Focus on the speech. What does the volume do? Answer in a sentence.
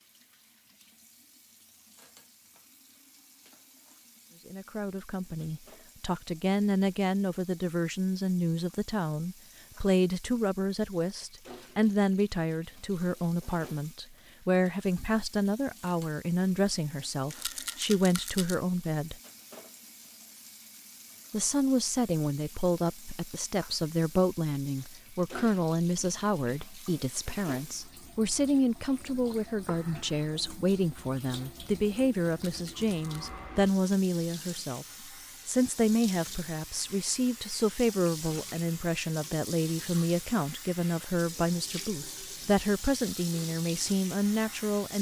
The loudness of the speech stays about the same.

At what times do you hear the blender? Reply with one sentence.
The blender can't be heard in this clip.